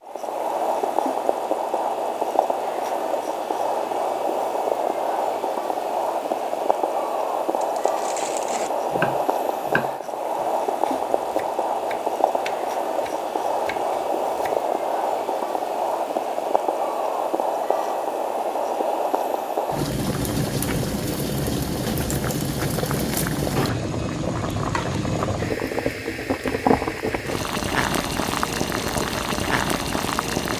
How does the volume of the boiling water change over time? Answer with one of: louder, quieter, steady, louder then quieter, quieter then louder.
steady.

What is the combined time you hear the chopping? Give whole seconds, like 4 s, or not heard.
6 s.